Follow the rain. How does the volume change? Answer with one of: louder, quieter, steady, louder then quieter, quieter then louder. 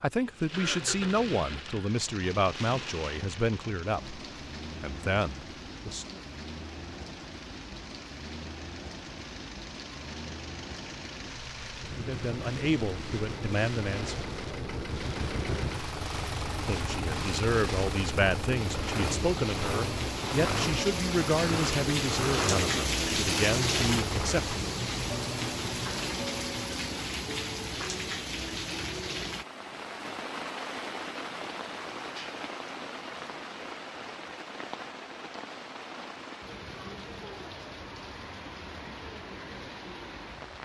louder then quieter.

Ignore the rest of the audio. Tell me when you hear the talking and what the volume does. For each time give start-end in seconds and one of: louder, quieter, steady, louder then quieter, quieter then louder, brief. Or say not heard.
0.0-4.2 steady
4.8-6.2 brief
11.9-14.2 brief
16.6-24.6 steady.